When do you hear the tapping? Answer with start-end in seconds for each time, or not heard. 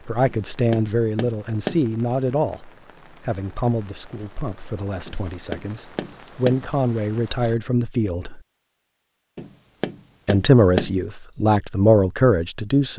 0.2-1.9, 5.0-6.7, 9.3-11.0.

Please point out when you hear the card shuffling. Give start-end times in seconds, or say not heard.
not heard.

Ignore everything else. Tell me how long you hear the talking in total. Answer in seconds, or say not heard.
11 s.